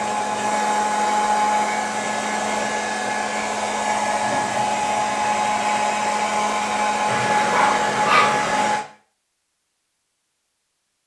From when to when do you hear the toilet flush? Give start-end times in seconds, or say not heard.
7.0-8.8.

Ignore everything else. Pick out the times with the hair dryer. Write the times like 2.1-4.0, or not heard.
0.0-8.8.